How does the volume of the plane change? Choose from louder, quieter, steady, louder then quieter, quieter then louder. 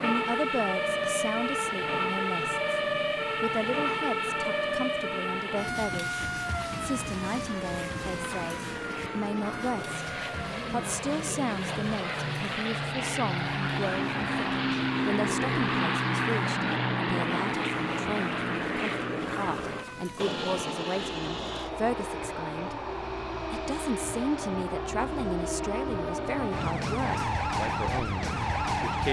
louder then quieter.